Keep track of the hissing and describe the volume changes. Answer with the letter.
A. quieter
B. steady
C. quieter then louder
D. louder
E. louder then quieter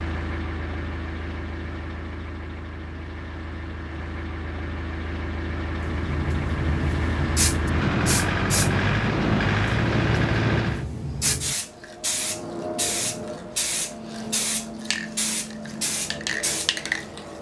B.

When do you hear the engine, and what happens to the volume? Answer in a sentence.
You can hear the engine from 0.0 to 10.8 s, getting louder.